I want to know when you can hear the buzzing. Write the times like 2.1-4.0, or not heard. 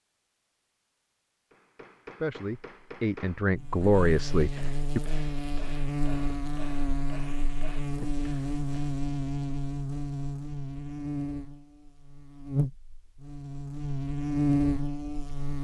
3.5-15.6.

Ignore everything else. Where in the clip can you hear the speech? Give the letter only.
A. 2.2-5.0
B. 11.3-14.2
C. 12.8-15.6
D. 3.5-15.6
A.